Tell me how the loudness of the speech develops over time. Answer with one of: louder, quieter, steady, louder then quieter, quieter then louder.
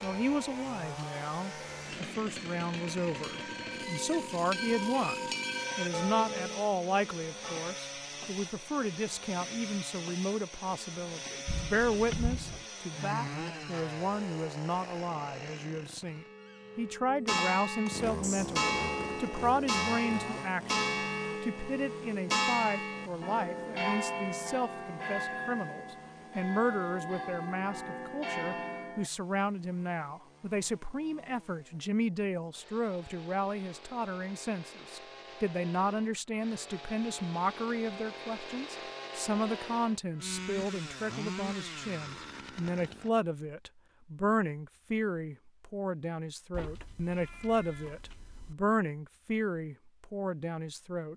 steady.